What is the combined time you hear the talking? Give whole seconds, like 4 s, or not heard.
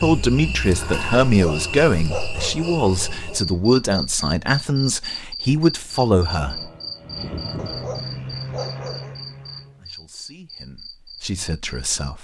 9 s.